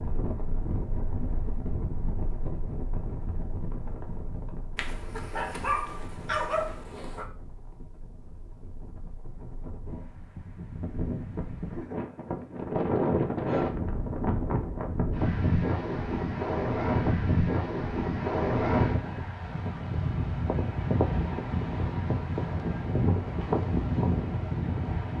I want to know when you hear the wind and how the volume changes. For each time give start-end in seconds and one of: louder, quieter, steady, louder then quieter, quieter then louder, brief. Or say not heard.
0.0-25.1 quieter then louder.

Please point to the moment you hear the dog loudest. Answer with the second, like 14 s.
6 s.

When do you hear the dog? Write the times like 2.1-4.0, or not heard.
4.8-7.2.